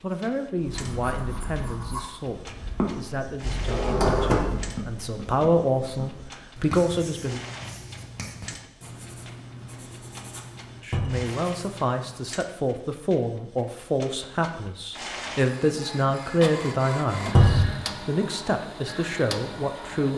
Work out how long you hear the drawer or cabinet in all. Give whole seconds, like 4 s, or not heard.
2 s.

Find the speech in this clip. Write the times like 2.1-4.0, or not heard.
0.0-7.5, 10.8-20.1.